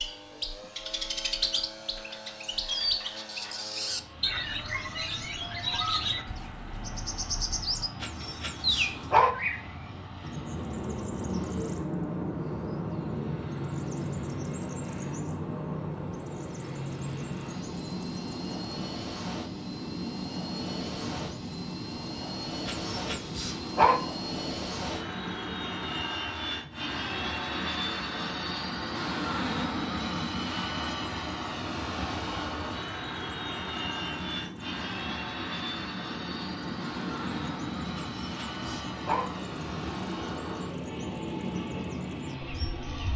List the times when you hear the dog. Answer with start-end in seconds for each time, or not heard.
8.0-9.3, 22.6-24.0, 38.0-39.2.